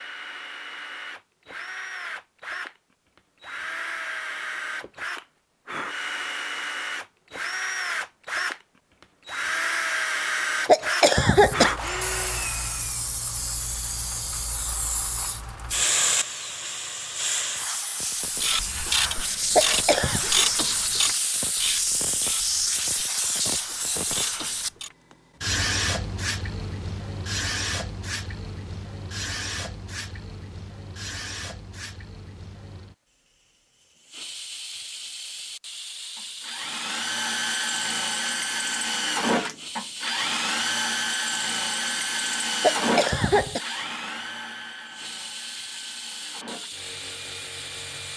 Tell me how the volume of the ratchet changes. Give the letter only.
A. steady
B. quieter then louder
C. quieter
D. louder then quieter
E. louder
C.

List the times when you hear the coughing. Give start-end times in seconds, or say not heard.
10.7-11.8, 19.6-20.2, 42.6-43.6.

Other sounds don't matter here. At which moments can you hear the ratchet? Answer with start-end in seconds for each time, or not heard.
18.4-24.9.